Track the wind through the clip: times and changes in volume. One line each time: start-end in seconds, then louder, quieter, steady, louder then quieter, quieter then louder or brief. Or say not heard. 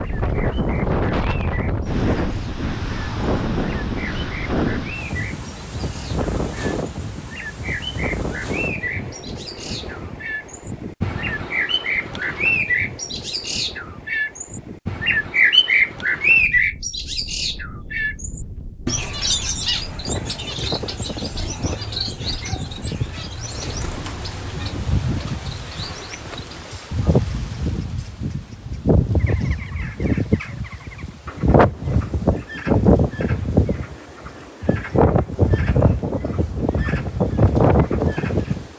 0.0-38.7 quieter then louder.